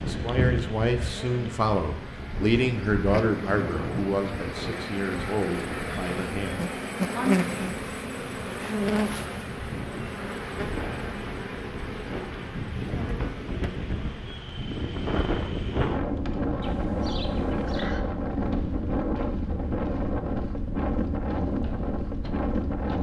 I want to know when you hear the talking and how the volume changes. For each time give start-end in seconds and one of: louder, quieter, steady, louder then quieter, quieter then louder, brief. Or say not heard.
0.0-7.3 quieter.